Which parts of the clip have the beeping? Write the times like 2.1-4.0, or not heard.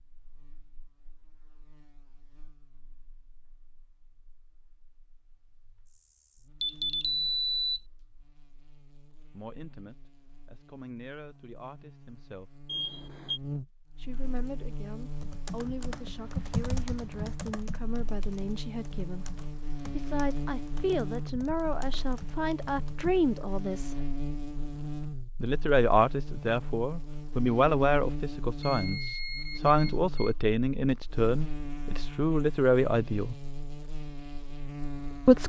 6.6-7.8, 12.7-13.4, 28.6-30.4.